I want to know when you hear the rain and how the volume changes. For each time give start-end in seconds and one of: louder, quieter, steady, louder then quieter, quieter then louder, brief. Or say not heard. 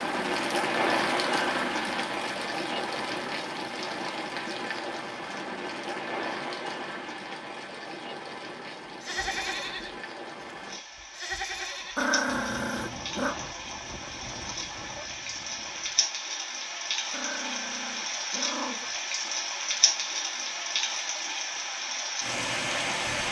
0.0-23.2 quieter then louder.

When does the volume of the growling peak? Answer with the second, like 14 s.
12 s.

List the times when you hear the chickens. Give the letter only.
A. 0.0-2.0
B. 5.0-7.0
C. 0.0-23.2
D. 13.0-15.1
D.